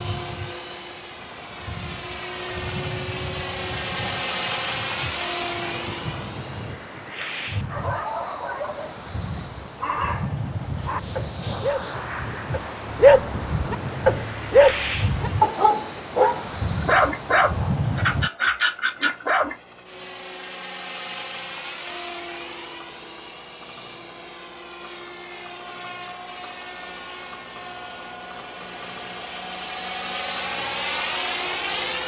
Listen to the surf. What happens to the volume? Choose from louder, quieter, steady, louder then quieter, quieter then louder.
louder.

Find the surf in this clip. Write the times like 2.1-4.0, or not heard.
0.0-18.3.